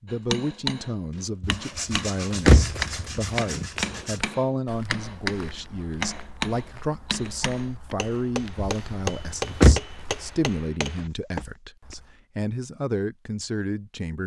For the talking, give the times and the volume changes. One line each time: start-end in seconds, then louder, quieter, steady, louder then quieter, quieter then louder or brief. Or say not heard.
0.0-14.2 steady.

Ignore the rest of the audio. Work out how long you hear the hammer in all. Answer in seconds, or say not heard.
11 s.